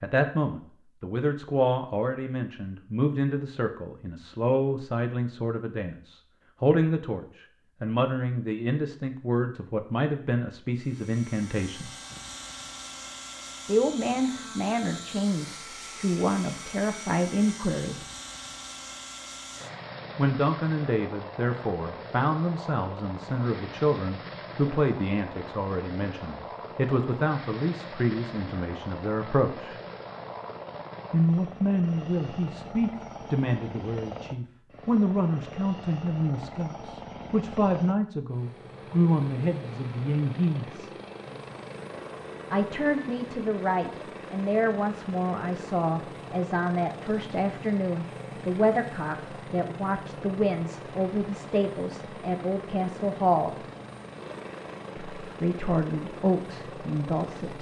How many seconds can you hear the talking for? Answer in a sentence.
The talking can be heard for 49 seconds in total.